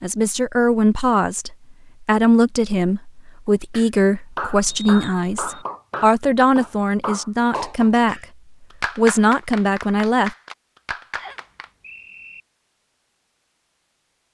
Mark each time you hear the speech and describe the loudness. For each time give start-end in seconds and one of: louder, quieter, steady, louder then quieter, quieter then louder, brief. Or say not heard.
0.0-8.2 steady
8.9-10.3 brief.